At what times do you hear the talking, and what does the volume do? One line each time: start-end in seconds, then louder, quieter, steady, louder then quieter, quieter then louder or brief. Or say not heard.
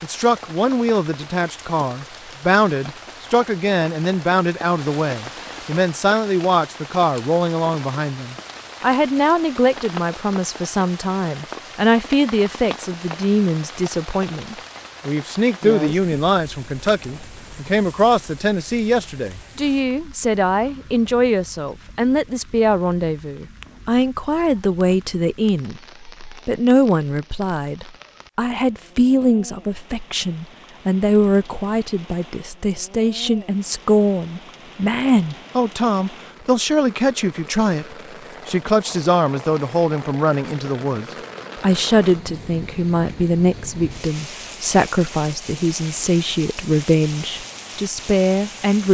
0.0-48.8 steady.